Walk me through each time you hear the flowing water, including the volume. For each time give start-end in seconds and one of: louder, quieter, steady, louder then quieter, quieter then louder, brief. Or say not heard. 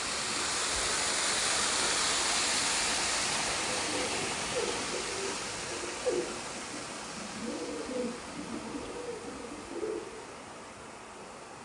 0.0-11.6 quieter.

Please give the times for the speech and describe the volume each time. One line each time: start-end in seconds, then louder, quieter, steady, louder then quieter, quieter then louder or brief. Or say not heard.
not heard.